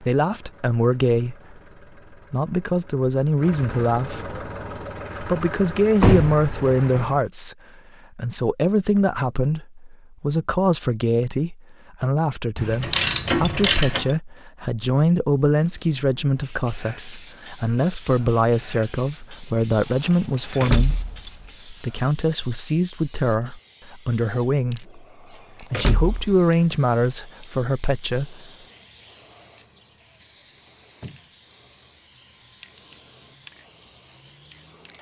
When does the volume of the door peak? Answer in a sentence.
The volume of the door peaks at 6 seconds.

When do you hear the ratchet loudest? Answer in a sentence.
The volume of the ratchet peaks at 13 seconds.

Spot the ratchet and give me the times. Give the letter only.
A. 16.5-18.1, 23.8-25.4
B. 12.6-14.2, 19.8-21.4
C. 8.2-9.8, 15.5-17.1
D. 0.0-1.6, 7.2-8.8
B.